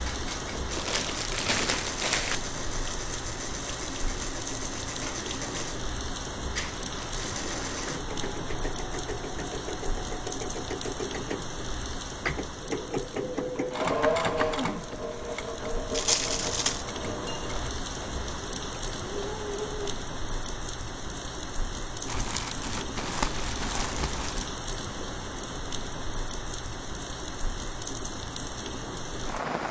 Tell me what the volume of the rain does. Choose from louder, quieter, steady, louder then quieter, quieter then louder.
steady.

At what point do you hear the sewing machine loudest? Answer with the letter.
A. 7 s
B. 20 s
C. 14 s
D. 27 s
C.